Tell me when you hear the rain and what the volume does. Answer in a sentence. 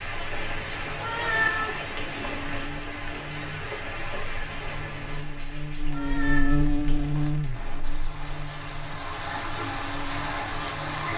The rain can be heard from 0.0 to 11.1 s, getting quieter then louder.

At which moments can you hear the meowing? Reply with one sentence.
You can hear the meowing from 1.0 to 2.4 s and from 5.9 to 7.3 s.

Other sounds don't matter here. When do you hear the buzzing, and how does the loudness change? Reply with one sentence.
The buzzing can be heard from 0.0 to 11.1 s, getting louder then quieter.